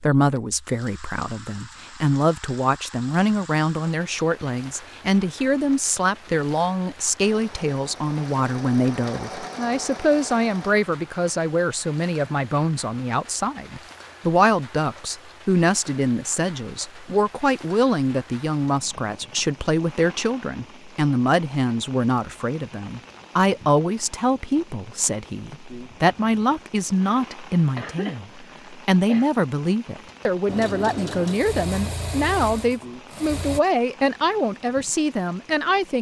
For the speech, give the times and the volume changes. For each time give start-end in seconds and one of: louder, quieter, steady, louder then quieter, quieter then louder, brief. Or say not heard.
0.0-35.9 steady.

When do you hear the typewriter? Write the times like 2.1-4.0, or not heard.
not heard.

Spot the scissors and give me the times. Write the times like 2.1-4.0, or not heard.
not heard.